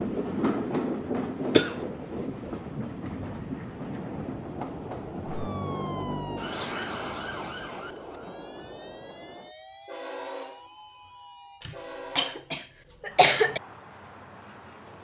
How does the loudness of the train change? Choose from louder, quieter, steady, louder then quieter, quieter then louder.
quieter.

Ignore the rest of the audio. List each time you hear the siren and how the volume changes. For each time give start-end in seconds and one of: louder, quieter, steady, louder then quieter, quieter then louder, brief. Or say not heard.
5.2-11.7 quieter.